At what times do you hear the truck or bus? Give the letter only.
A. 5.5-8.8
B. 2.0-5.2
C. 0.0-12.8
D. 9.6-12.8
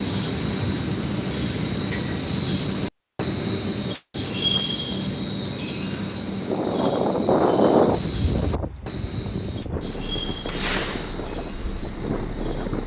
D.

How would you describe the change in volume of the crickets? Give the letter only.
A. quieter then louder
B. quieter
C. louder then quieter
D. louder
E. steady
B.